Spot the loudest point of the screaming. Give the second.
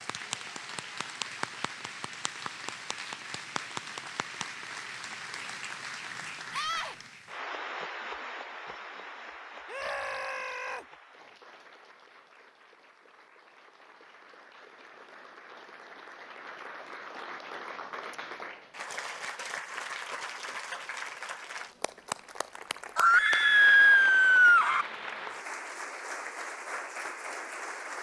24 s.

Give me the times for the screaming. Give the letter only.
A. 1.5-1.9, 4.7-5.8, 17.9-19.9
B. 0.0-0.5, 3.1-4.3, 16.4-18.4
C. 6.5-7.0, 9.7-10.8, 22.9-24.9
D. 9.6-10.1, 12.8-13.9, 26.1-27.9
C.